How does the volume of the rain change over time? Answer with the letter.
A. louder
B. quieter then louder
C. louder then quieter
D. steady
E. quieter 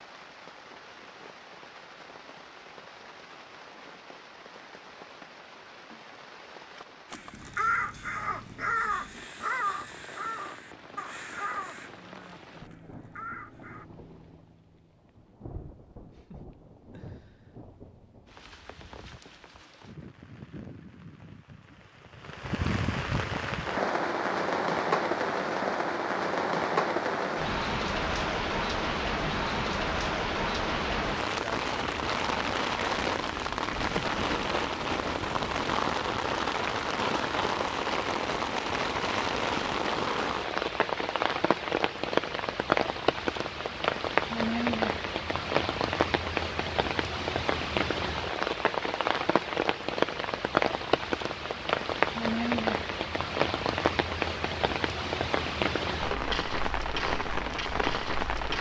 A.